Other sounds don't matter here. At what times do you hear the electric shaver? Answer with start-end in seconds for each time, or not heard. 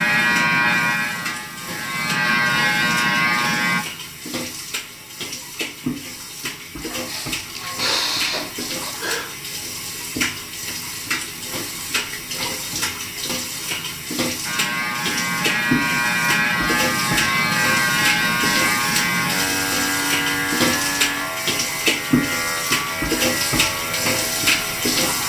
0.0-3.8, 14.4-25.2.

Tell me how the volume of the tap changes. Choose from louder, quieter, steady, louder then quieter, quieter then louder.
louder.